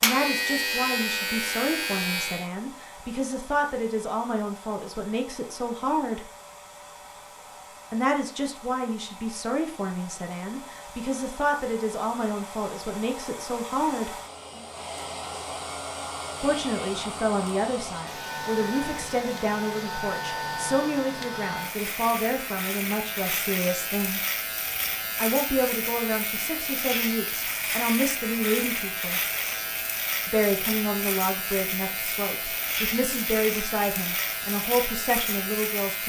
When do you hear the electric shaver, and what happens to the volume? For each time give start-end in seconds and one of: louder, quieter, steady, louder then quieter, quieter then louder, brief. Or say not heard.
0.0-2.5 brief
18.1-36.0 steady.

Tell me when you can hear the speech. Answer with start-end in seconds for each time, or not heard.
0.0-6.2, 7.9-14.1, 16.4-24.2, 25.1-29.2, 30.2-36.0.